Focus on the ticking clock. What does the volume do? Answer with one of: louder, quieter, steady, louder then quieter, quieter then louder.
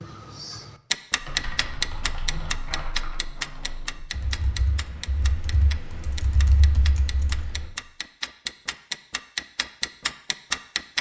quieter then louder.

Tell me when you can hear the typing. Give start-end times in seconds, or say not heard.
1.1-7.7.